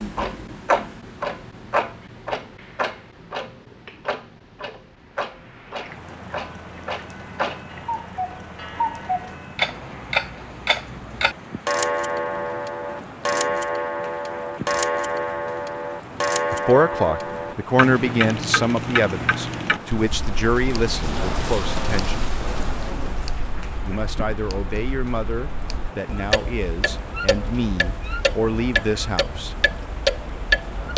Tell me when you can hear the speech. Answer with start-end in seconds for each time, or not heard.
16.5-22.2, 23.9-29.5.